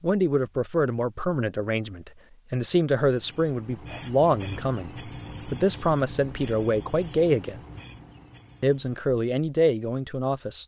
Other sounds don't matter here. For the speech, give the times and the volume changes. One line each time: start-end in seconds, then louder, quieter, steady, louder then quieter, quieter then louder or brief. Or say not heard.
0.0-7.6 steady
8.6-10.6 brief.